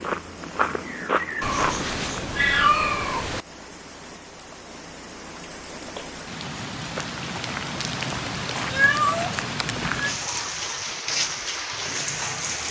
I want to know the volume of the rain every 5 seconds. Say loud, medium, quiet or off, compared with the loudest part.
quiet, loud, loud.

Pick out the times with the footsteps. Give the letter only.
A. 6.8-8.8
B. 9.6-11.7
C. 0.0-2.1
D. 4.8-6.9
C.